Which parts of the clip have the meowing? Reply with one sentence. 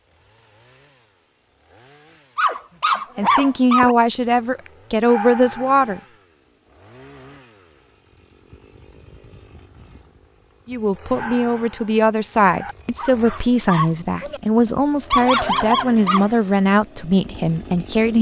You can't hear the meowing here.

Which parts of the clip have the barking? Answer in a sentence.
You can hear the barking from 2.4 to 5.9 s, from 11.1 to 14.4 s and from 15.1 to 16.2 s.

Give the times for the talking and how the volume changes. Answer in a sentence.
You can hear the talking briefly from 3.1 to 6.0 s; and from 10.7 to 18.1 s, at a steady volume.